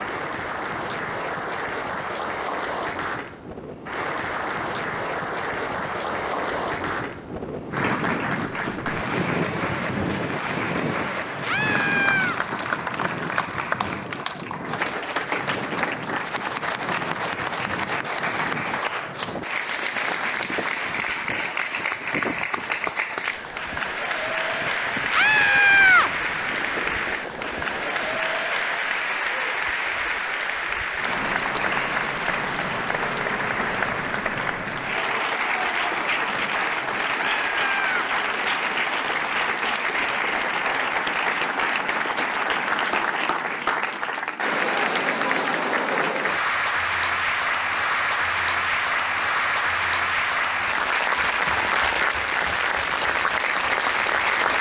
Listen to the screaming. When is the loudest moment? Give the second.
26 s.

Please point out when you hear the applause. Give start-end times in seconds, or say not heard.
0.0-54.5.